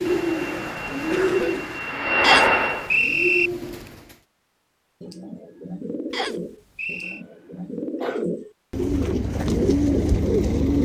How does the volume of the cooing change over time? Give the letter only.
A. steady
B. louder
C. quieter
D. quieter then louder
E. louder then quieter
D.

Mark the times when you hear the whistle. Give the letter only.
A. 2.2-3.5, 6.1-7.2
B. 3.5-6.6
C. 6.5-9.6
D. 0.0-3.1
A.